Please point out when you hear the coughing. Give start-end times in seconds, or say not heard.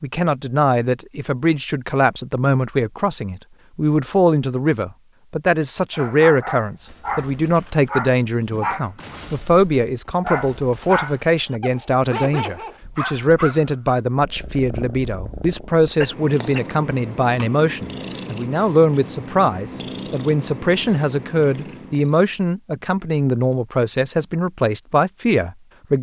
16.0-16.6.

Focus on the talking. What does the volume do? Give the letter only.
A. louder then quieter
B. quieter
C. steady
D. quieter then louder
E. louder
C.